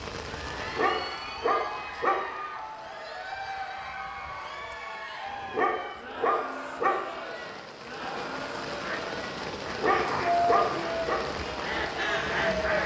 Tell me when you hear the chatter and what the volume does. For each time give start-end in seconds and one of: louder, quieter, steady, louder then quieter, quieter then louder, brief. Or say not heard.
0.3-12.8 steady.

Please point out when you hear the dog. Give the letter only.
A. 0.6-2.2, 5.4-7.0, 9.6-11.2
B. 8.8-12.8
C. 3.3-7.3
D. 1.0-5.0
A.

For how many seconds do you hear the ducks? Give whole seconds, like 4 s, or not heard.
4 s.